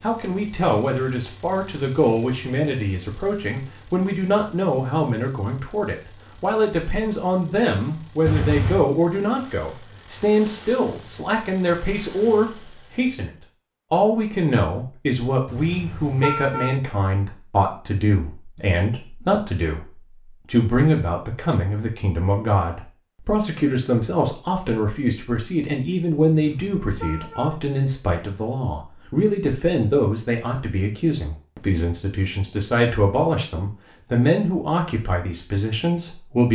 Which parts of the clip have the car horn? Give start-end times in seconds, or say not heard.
8.2-8.9, 15.4-16.8, 26.4-27.6.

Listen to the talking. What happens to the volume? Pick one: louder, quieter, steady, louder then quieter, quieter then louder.
steady.